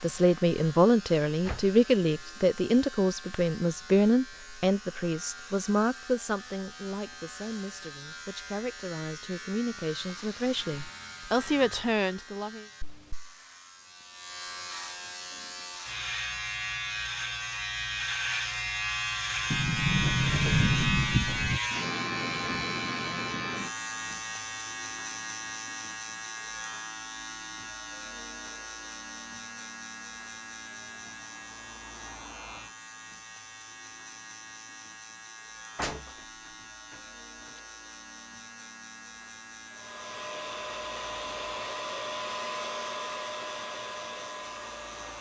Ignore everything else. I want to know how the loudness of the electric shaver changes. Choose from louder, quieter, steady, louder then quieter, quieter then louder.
louder then quieter.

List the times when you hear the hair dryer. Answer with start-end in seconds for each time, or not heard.
39.7-45.1.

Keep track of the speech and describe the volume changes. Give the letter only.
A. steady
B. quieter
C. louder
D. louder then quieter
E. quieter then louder
E.